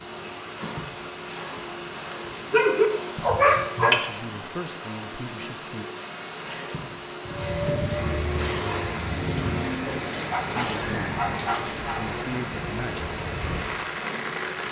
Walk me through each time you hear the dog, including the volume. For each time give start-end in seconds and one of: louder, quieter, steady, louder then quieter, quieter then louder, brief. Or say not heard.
2.1-4.0 brief
7.2-12.0 quieter then louder.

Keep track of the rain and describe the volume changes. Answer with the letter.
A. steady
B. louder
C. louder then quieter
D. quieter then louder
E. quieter
B.